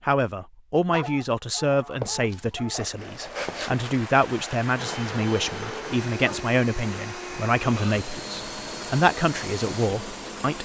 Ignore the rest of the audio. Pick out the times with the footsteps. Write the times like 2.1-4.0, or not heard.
2.0-4.0.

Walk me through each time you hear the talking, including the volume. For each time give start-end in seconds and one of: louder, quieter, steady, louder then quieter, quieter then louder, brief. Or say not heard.
0.1-10.6 steady.